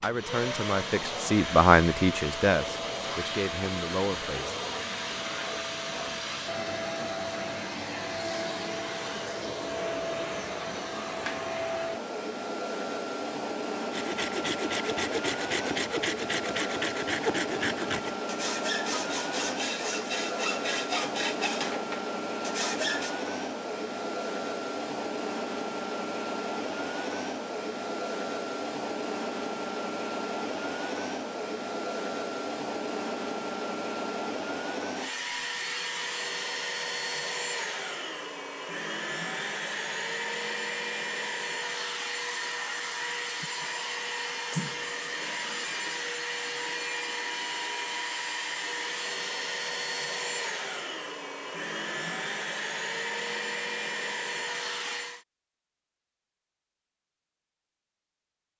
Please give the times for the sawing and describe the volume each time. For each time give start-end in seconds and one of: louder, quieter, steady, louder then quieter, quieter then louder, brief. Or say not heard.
13.9-23.1 steady.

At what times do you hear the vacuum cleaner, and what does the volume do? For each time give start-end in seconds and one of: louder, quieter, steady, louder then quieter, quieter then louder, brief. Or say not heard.
0.0-55.2 steady.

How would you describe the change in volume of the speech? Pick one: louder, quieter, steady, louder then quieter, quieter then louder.
louder then quieter.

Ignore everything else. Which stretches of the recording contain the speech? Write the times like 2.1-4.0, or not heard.
0.0-4.6.